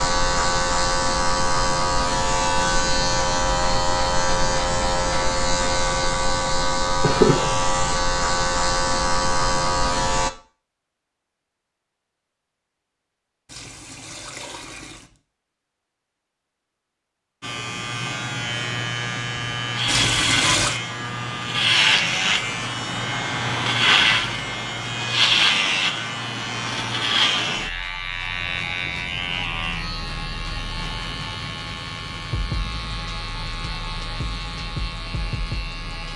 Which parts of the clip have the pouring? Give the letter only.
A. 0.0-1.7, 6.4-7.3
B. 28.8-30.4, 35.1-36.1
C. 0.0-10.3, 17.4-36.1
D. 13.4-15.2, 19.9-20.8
D.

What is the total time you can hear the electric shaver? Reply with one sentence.
The electric shaver can be heard for 29 seconds in total.